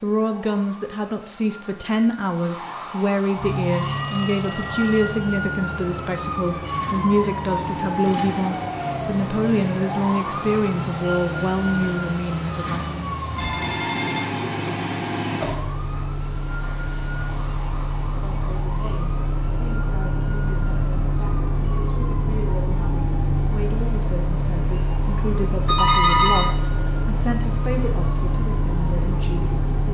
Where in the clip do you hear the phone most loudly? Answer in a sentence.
The volume of the phone peaks at 26 seconds.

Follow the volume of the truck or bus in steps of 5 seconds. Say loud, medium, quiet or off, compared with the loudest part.
loud, medium, loud, loud, loud, loud.